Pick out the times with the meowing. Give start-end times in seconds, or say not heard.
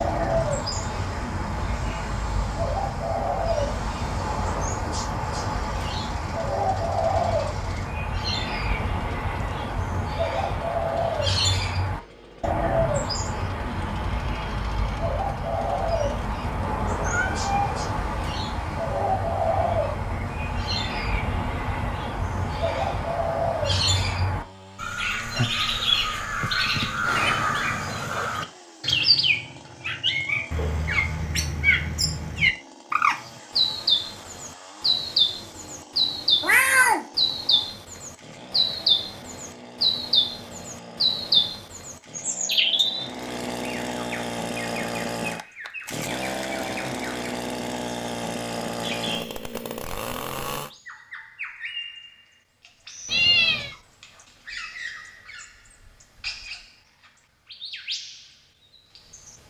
16.6-17.9, 36.4-37.0, 53.0-53.8.